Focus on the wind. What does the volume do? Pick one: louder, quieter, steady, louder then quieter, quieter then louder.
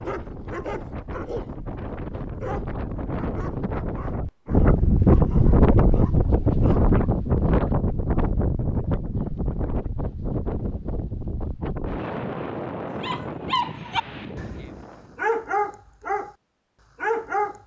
louder then quieter.